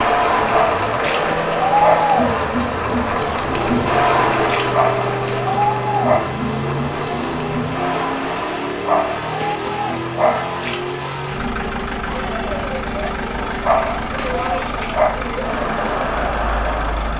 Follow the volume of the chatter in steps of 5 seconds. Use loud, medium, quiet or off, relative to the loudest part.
loud, medium, medium, medium.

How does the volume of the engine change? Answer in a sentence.
The loudness of the engine stays about the same.